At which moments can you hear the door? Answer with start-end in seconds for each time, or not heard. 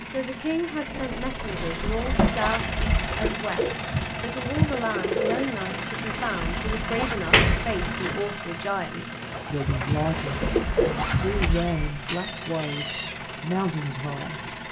0.8-2.3, 6.9-8.2, 11.3-13.2.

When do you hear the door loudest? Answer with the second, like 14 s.
7 s.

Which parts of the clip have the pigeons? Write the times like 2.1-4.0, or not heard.
3.0-5.6, 9.2-11.3.